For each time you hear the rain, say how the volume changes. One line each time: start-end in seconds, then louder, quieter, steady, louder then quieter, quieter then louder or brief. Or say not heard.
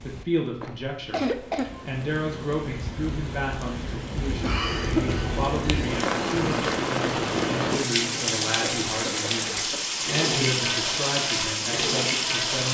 0.0-12.6 louder.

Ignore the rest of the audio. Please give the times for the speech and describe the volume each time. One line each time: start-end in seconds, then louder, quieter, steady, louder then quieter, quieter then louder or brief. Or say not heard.
0.0-12.6 steady.